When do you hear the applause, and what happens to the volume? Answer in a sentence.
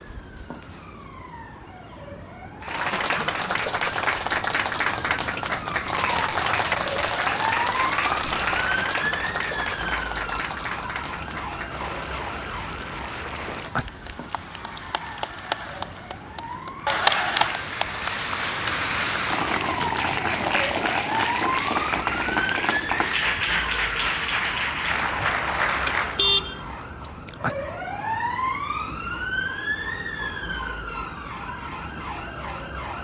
You can hear the applause from 2.6 to 26.2 s, getting quieter then louder.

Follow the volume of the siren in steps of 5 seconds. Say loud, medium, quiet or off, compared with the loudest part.
medium, loud, medium, medium, loud, loud, loud.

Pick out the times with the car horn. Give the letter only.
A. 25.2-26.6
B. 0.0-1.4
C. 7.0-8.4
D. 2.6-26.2
A.